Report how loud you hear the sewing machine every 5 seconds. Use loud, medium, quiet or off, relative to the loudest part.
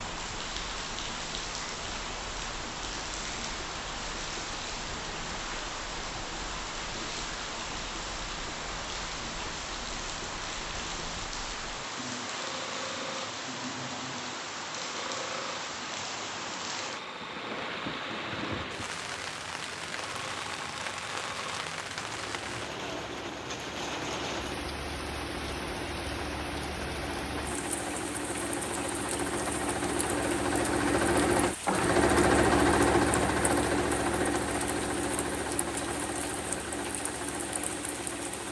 quiet, quiet, quiet, quiet, quiet, medium, loud, medium.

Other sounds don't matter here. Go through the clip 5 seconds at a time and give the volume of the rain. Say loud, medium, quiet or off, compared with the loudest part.
loud, loud, loud, loud, loud, loud, medium, medium.